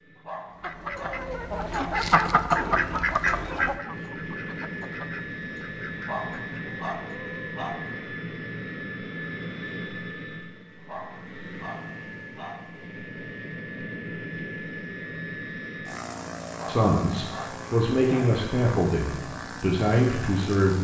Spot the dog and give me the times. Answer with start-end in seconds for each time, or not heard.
0.1-2.0, 6.0-7.8, 10.8-12.8, 16.5-18.4.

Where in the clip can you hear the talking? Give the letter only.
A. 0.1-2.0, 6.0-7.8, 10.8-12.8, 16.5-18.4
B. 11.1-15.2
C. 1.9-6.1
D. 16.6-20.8
D.